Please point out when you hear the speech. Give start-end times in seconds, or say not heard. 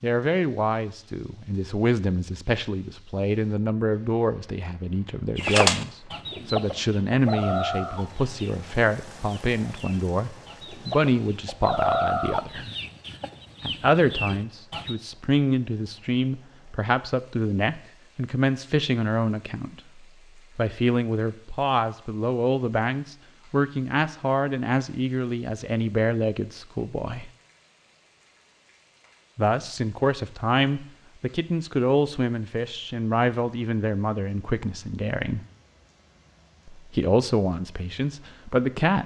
0.0-12.7, 13.6-27.3, 29.4-35.5, 36.6-39.0.